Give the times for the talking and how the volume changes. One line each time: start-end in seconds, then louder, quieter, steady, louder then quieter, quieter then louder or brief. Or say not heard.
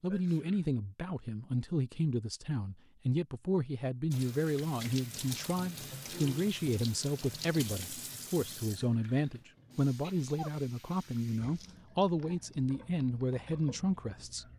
0.0-14.4 steady.